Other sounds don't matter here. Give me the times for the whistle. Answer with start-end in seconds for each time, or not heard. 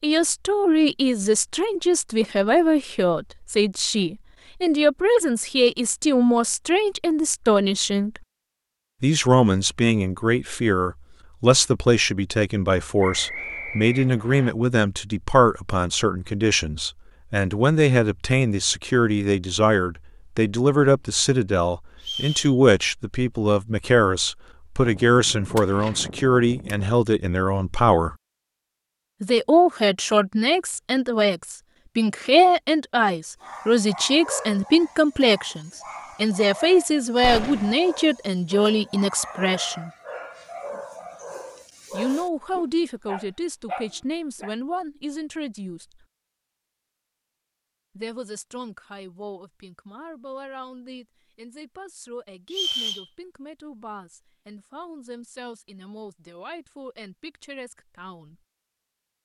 13.0-14.6, 22.0-22.6, 52.5-53.0.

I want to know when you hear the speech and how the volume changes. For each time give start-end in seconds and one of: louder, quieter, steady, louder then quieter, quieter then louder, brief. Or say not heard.
0.0-8.2 steady
9.0-28.1 steady
29.2-39.9 steady
41.9-46.0 quieter
48.0-58.4 steady.